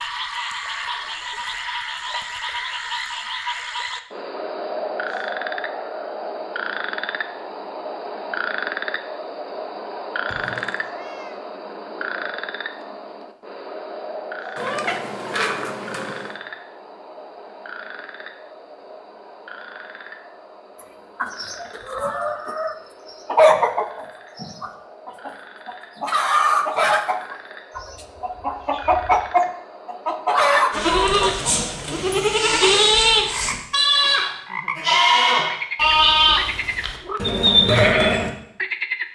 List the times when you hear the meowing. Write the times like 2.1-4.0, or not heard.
10.2-11.4, 14.6-16.4, 27.7-29.4.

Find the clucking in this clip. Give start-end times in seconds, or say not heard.
20.8-31.6.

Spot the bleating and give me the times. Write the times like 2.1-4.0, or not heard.
30.7-38.3.